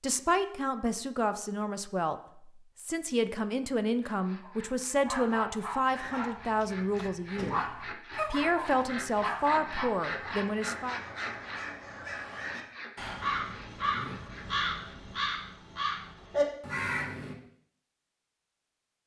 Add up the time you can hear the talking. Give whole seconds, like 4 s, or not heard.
10 s.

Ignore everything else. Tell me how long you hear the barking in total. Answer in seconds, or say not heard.
6 s.